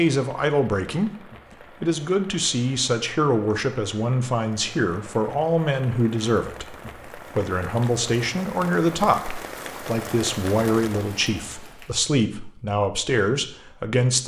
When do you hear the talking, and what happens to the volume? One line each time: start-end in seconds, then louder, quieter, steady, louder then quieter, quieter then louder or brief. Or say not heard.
0.0-14.2 steady.